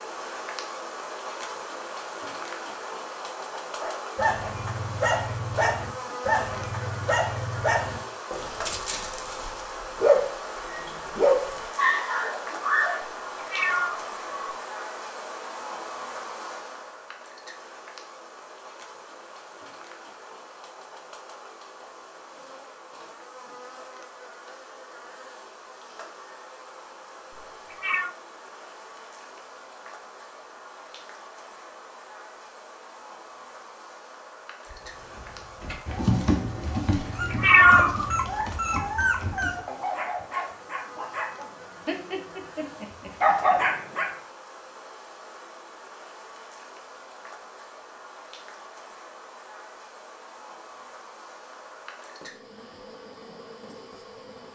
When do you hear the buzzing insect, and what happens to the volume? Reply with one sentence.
You can hear the buzzing insect from 0.0 to 54.4 s, getting quieter.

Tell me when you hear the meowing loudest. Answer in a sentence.
The loudest moment of the meowing is at 38 seconds.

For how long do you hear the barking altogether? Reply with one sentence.
The barking can be heard for 19 seconds in total.